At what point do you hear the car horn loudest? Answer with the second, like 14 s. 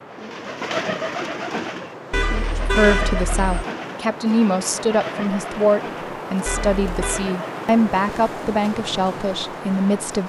3 s.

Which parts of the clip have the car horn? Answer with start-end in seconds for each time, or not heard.
2.1-3.4, 6.5-7.3.